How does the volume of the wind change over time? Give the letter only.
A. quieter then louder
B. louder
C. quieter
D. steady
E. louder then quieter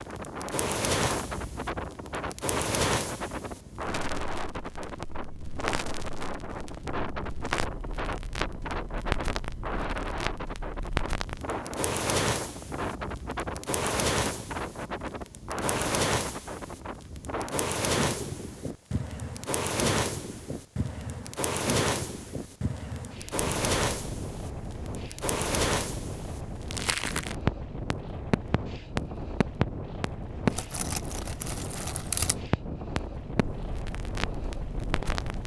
D.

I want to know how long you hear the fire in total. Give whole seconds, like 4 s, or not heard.
35 s.